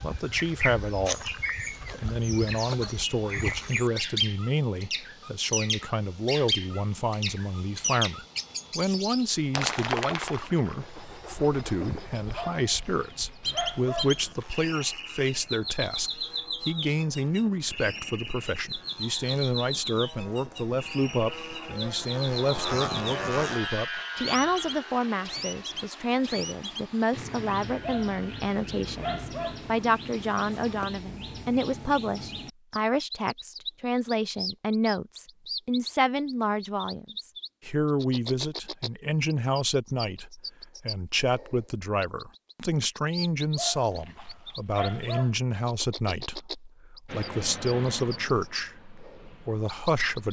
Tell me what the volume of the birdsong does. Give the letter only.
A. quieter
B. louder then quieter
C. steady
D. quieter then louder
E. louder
A.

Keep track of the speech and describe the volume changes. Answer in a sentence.
The loudness of the speech stays about the same.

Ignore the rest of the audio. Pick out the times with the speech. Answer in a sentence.
You can hear the speech from 0.0 to 50.2 s.